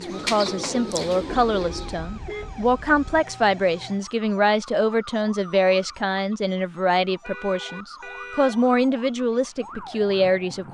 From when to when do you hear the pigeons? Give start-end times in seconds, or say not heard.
0.0-2.1.